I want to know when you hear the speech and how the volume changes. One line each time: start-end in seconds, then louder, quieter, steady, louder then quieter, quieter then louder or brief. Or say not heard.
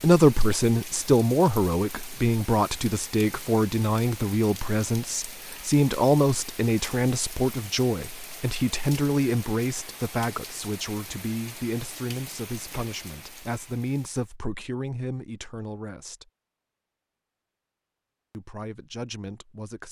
0.0-16.2 quieter
18.3-19.8 brief.